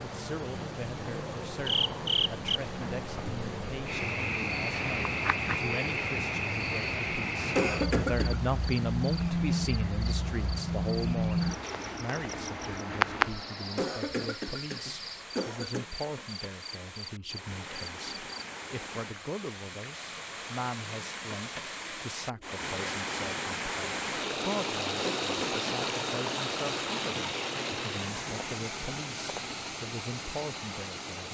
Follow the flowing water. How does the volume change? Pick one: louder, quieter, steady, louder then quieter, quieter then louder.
louder.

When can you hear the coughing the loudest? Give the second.
8 s.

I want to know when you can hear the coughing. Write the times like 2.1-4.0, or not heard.
7.5-8.4, 13.8-15.8, 25.0-25.6.